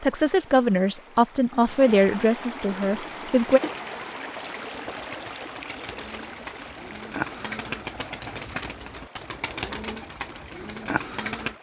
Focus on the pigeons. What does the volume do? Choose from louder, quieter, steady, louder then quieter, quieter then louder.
louder.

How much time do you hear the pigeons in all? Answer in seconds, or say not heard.
9 s.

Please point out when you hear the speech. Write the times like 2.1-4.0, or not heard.
0.0-3.6.